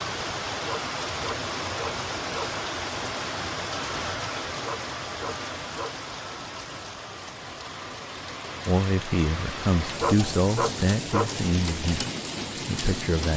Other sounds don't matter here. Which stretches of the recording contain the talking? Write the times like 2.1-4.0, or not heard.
8.7-12.1, 12.7-13.3.